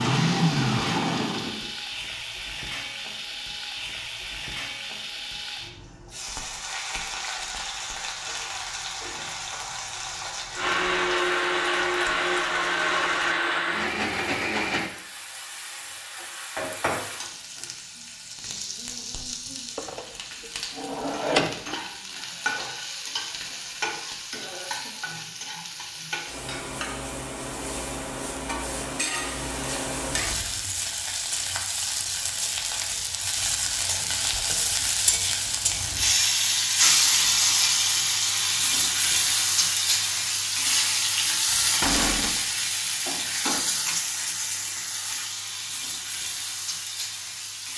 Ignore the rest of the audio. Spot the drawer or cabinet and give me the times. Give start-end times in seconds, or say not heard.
19.8-21.8, 41.8-42.4.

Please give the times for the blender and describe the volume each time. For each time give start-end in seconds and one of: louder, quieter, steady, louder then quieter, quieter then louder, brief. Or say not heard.
0.0-1.7 brief
10.6-14.9 steady.